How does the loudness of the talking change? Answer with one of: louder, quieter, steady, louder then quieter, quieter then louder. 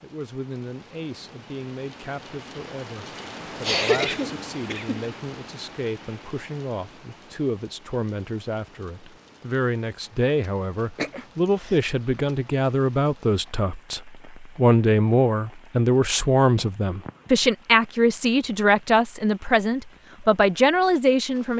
louder.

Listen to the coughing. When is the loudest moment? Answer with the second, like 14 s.
4 s.